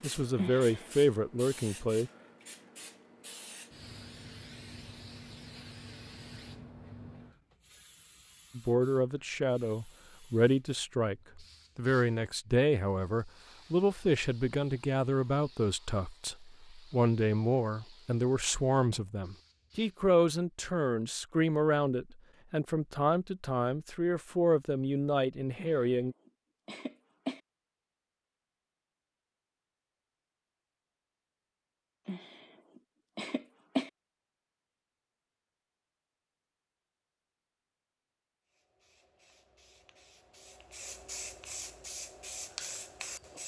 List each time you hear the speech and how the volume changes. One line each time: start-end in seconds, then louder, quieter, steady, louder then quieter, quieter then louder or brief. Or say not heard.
0.0-2.1 brief
8.6-26.1 steady.